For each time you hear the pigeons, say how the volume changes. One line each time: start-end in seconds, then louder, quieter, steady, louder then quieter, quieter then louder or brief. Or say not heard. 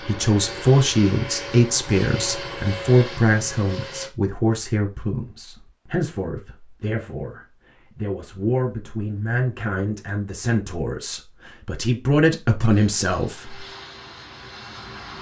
not heard.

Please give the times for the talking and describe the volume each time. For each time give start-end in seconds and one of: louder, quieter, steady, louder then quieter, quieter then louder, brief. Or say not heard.
0.0-13.7 quieter then louder.